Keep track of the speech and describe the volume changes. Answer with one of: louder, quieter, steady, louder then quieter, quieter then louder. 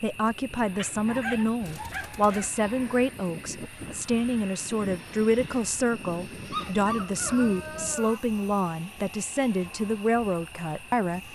steady.